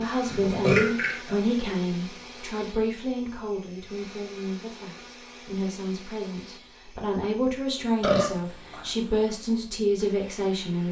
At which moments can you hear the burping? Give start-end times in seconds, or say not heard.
0.2-1.7, 8.0-8.8.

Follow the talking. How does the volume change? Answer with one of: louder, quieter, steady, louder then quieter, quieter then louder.
quieter then louder.